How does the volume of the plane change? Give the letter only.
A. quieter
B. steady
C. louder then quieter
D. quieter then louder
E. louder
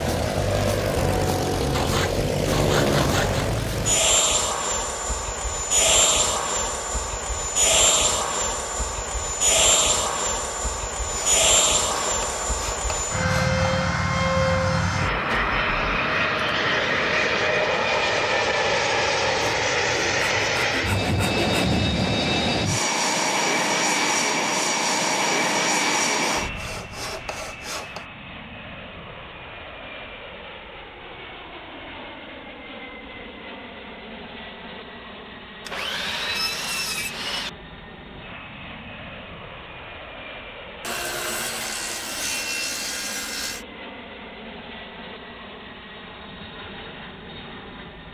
A.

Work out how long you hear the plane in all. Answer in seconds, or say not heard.
48 s.